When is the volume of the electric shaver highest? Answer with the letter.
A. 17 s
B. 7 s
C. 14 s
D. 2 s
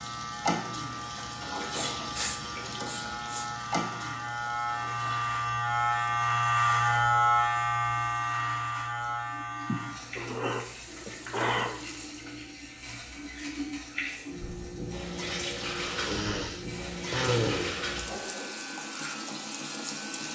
B.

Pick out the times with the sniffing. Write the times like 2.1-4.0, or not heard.
1.7-3.5, 9.7-11.8, 15.6-17.8.